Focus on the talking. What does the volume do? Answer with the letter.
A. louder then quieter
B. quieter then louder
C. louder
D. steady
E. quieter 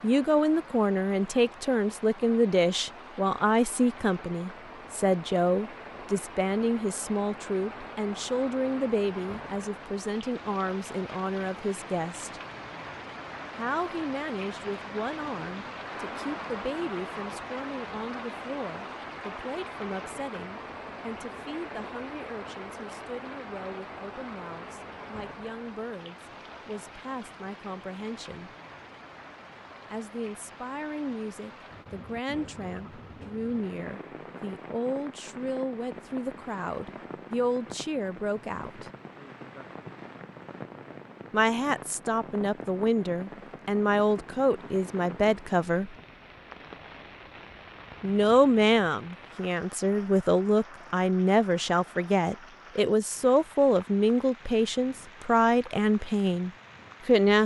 B.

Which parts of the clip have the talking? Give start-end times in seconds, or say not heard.
0.0-12.4, 13.6-28.5, 29.9-38.9, 41.3-46.0, 48.0-57.4.